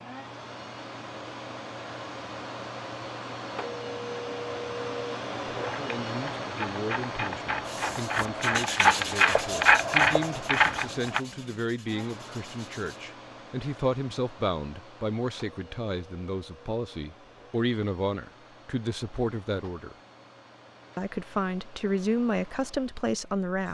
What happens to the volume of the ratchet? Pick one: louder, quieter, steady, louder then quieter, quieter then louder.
louder.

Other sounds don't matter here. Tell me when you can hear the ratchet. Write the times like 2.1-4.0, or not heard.
5.6-11.2.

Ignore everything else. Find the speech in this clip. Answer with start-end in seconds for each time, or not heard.
5.6-19.9, 20.9-23.7.